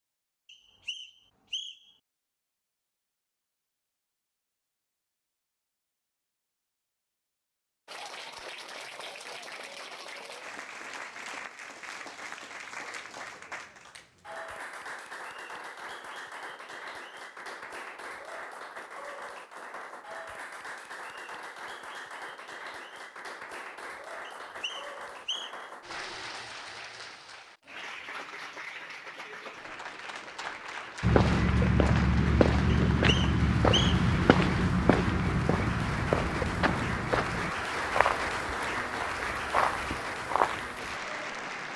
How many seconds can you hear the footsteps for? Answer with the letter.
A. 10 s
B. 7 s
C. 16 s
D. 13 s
A.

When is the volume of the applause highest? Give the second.
38 s.